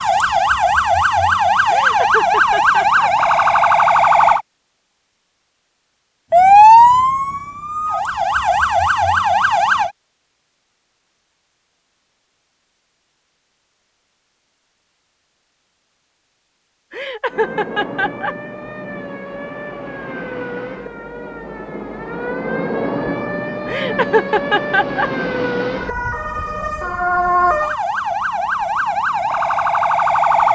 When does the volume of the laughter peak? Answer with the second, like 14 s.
24 s.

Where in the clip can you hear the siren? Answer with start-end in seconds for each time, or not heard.
0.0-4.4, 6.3-9.9, 17.2-30.5.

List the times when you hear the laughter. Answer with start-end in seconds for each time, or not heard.
1.6-3.1, 16.9-18.4, 23.6-25.1.